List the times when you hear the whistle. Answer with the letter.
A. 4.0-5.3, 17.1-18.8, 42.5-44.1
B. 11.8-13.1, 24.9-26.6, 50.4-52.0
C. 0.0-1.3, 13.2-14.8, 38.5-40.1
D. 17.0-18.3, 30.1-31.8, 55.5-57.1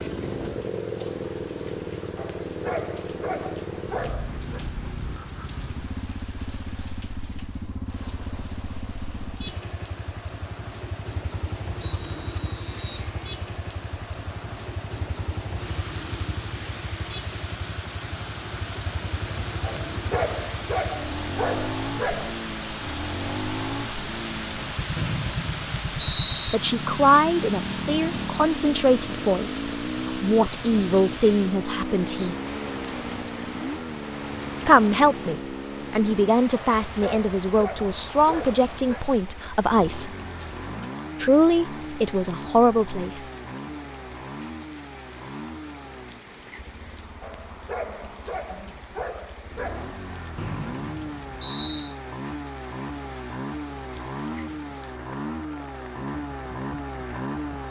B.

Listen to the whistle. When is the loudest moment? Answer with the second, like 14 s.
26 s.